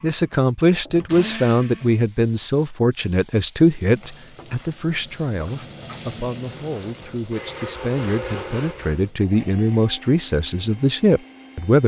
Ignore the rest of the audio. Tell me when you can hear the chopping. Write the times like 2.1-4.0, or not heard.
not heard.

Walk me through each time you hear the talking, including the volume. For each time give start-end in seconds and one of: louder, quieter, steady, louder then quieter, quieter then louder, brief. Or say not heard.
0.0-11.8 quieter then louder.